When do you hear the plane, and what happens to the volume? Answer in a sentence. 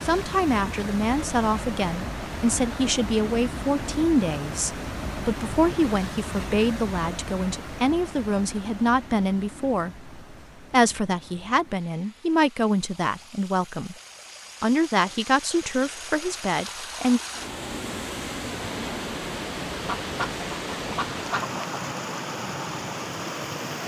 The plane can't be heard in this clip.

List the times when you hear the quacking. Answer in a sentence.
You can hear the quacking from 19.7 to 21.8 s.